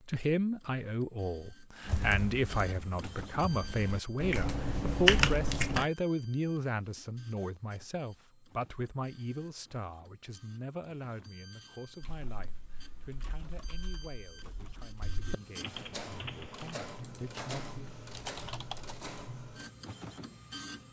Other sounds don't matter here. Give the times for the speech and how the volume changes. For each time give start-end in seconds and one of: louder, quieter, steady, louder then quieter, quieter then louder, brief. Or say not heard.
0.1-17.9 quieter.